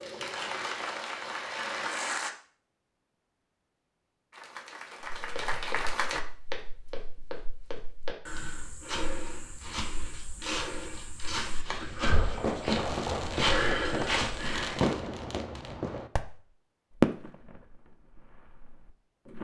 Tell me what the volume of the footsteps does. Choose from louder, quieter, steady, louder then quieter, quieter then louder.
louder.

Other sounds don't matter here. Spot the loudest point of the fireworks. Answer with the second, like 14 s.
17 s.